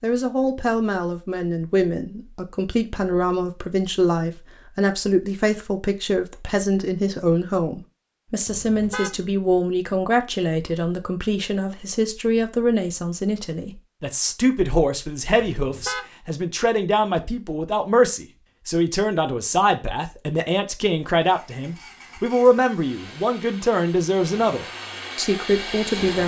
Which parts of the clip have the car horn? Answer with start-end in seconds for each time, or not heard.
8.4-9.2, 15.6-16.1.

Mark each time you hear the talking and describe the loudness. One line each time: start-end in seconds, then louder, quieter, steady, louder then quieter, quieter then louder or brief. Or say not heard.
0.0-26.2 steady.